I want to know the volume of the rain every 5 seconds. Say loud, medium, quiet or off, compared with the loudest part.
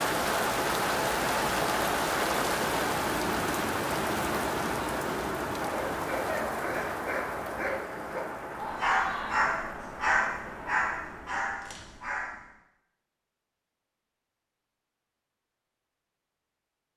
loud, medium, quiet, off.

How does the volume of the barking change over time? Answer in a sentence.
The volume of the barking goes up, then down.